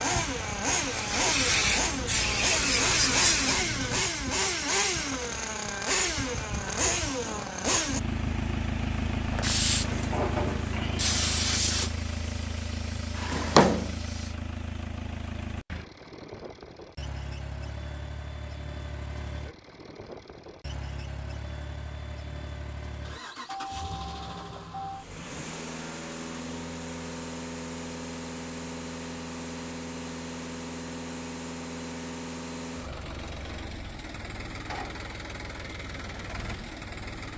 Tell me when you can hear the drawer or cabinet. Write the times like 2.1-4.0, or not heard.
13.2-13.9.